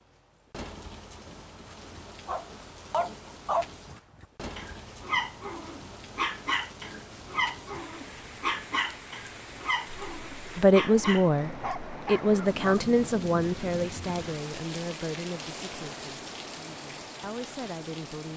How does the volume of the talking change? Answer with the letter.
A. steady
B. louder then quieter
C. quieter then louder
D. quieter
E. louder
D.